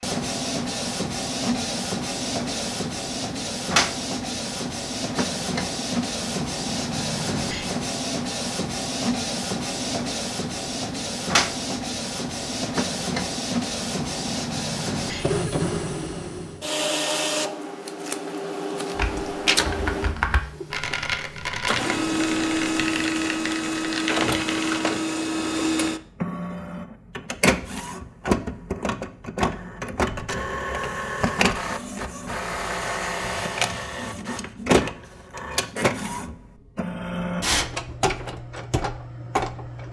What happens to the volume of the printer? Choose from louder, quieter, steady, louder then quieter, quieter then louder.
steady.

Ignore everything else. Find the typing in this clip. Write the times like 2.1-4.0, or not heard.
18.9-24.9.